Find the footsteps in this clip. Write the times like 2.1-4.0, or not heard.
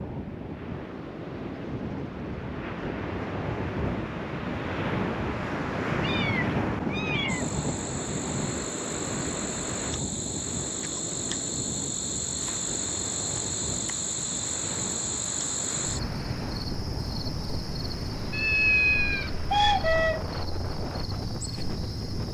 not heard.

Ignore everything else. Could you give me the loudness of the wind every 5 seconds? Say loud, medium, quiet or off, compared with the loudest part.
loud, loud, medium, medium, medium.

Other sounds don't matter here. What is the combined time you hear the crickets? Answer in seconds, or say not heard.
15 s.